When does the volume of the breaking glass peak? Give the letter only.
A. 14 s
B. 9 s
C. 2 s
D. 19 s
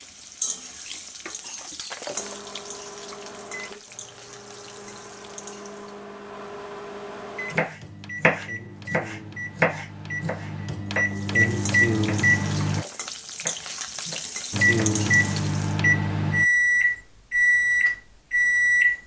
C.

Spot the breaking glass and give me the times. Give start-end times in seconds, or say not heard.
1.8-2.5, 12.6-13.2.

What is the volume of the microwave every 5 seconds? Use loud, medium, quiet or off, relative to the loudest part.
quiet, quiet, loud, loud.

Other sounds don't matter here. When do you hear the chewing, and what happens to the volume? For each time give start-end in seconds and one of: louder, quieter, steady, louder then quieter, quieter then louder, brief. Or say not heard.
not heard.